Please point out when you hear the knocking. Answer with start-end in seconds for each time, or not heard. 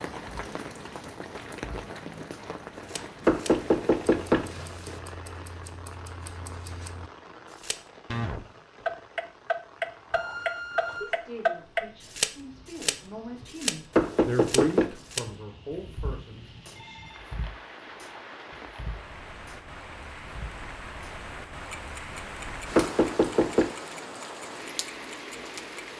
3.2-5.0, 13.9-14.9, 22.8-23.7.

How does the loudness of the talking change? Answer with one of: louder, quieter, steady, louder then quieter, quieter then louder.
louder then quieter.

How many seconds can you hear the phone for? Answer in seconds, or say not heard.
2 s.